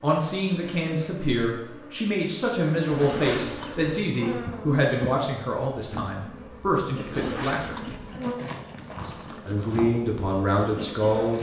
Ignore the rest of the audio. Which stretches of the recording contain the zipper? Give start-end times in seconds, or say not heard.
2.9-3.9, 7.0-8.2.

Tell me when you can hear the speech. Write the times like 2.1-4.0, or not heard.
0.0-7.8, 8.9-11.3.